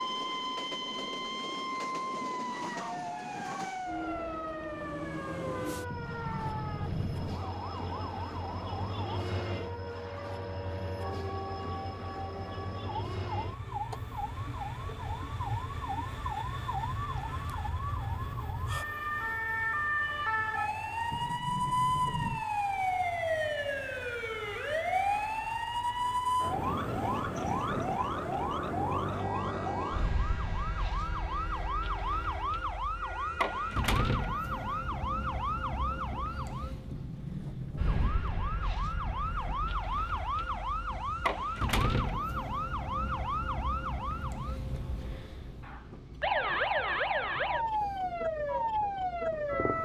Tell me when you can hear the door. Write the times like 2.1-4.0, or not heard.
5.9-7.5, 21.1-22.4, 36.9-38.1.